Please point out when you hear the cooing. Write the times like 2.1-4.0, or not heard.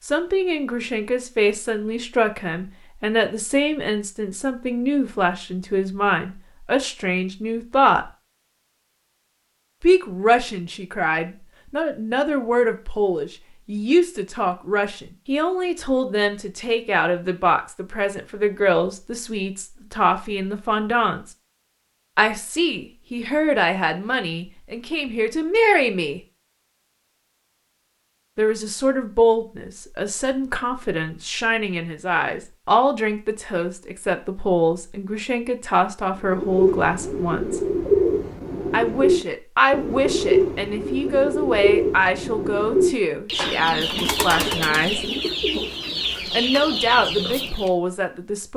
36.2-47.7.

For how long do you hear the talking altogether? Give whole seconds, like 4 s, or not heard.
41 s.